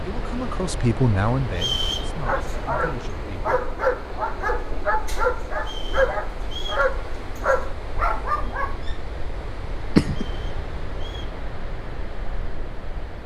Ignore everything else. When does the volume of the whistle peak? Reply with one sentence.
The loudest moment of the whistle is at 2 seconds.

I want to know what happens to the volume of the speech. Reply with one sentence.
The volume of the speech goes down.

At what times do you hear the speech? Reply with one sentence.
The speech can be heard from 0.0 to 4.1 s.